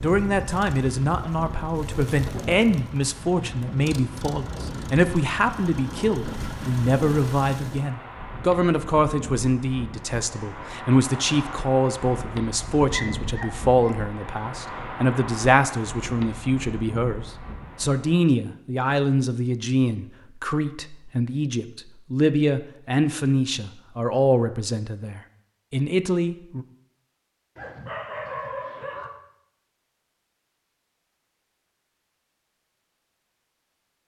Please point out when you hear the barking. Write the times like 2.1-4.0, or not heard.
12.9-13.9, 27.6-29.1.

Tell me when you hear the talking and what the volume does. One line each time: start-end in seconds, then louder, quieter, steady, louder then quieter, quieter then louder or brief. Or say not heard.
0.0-26.6 steady.